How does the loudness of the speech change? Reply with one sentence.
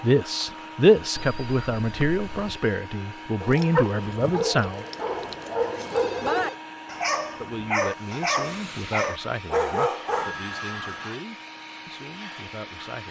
The volume of the speech goes down.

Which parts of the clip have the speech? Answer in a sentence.
You can hear the speech from 0.0 to 4.8 s and from 7.3 to 13.0 s.